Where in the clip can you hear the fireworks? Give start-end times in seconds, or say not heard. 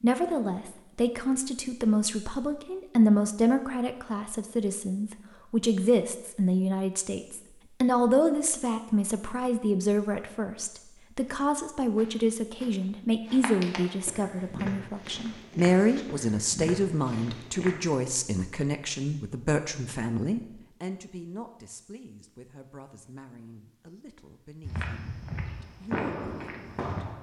25.4-27.1.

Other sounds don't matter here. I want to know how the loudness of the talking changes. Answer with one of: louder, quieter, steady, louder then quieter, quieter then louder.
quieter.